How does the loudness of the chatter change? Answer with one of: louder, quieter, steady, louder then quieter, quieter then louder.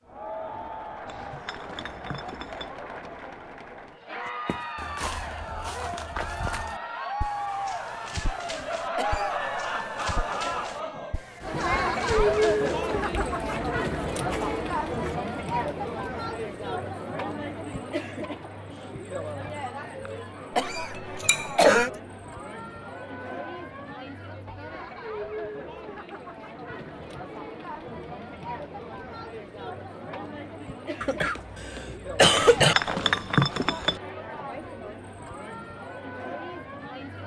louder then quieter.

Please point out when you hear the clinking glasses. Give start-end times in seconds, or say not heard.
1.1-2.7, 20.9-21.8, 32.4-34.0.